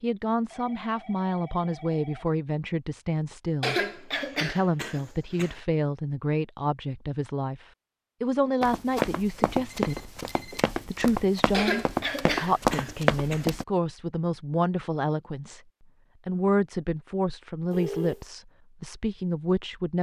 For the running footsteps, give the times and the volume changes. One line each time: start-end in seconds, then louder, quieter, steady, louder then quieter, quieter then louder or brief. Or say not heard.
8.6-13.7 quieter then louder.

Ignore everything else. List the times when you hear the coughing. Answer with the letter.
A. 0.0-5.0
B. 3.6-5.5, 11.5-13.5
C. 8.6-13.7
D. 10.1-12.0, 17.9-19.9
B.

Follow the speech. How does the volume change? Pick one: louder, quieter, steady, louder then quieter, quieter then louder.
steady.